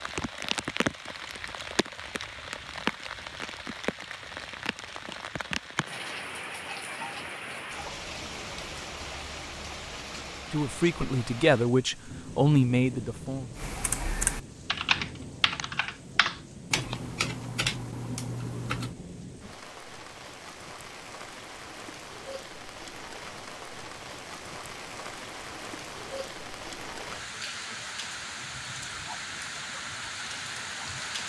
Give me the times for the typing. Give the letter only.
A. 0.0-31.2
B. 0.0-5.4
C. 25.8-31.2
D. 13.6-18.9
D.